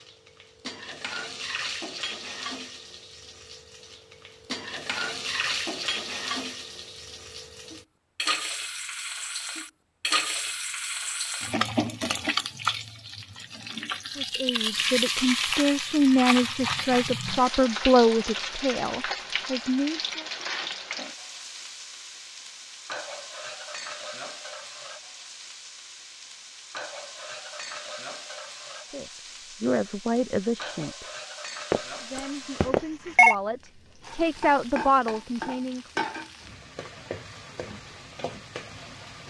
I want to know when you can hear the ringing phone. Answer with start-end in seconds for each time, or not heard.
31.7-33.4.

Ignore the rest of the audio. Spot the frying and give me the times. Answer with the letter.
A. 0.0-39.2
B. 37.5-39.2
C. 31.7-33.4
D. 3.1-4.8
A.